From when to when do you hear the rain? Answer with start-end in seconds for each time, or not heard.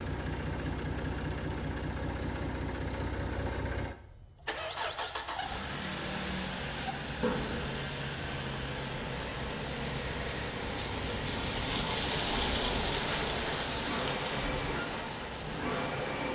5.9-16.3.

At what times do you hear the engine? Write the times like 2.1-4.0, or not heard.
0.0-16.3.